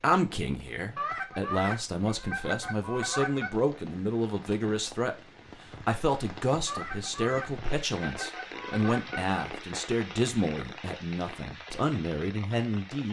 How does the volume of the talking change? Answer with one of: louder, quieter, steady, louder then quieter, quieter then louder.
steady.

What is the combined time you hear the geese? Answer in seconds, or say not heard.
5 s.